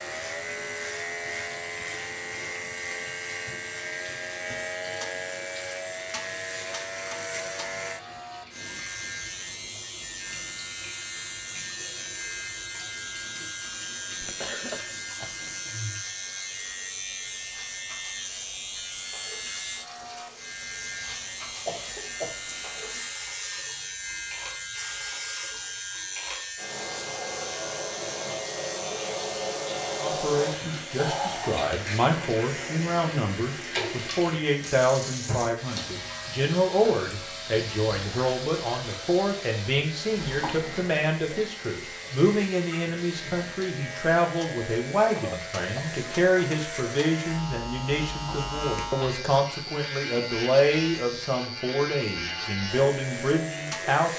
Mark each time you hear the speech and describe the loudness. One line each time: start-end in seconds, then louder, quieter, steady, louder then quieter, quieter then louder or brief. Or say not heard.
29.9-54.1 steady.